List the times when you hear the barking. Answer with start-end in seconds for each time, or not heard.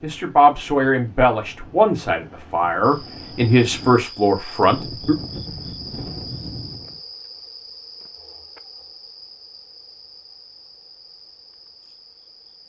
not heard.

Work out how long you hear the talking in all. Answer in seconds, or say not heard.
5 s.